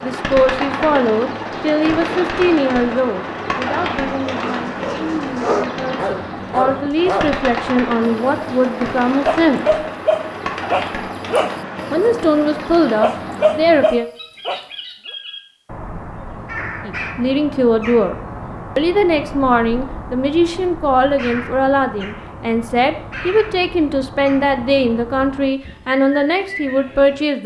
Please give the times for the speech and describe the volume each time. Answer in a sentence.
You can hear the speech from 0.0 to 9.7 s, getting quieter then louder; briefly from 11.9 to 14.1 s; briefly from 16.9 to 18.1 s; and from 18.8 to 27.4 s, at a steady volume.